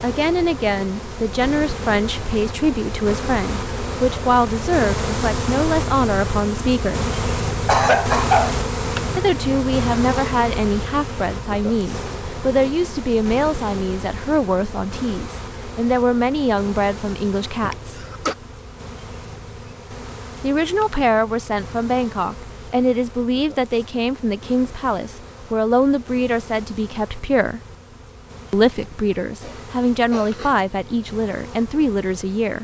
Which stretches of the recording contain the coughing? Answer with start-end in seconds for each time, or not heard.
7.7-8.6, 17.6-18.4, 29.4-30.6.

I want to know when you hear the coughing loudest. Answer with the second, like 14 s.
8 s.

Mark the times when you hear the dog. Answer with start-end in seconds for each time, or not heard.
not heard.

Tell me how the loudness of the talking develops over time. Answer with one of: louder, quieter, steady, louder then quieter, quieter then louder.
steady.